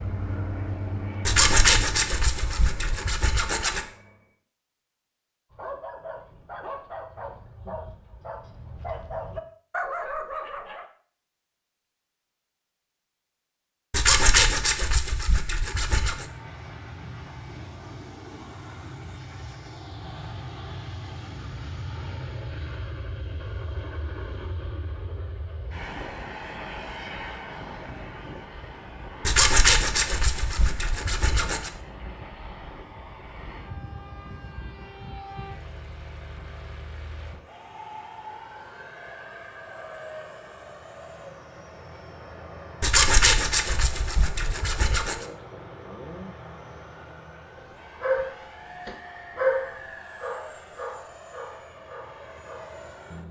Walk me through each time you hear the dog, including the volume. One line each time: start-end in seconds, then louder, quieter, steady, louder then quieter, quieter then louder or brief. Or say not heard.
5.5-10.8 louder
48.0-52.8 louder then quieter.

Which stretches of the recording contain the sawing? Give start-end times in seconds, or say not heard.
1.2-3.9, 13.9-16.2, 29.2-31.7, 42.8-45.2.